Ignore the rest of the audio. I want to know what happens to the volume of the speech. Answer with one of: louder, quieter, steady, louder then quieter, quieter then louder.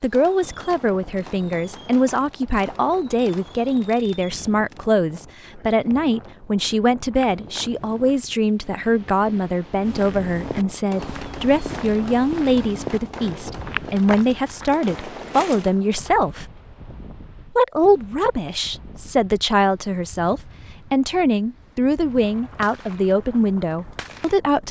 steady.